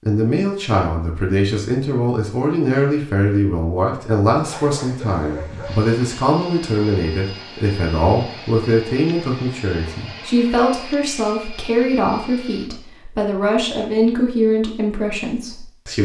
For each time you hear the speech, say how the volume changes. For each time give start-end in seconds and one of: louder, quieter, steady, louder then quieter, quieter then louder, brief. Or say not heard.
0.1-16.0 steady.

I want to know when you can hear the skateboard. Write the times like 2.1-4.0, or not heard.
not heard.